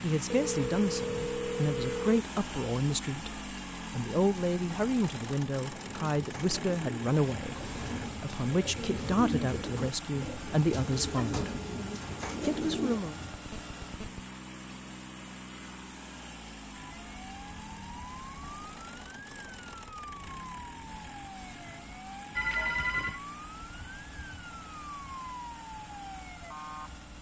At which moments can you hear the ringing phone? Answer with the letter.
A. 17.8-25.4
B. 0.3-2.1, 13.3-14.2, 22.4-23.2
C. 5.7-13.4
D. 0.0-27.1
B.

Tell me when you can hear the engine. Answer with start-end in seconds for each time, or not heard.
0.0-27.1.